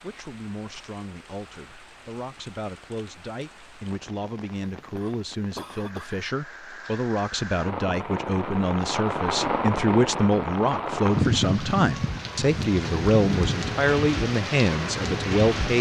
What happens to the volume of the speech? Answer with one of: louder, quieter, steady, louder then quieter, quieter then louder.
louder.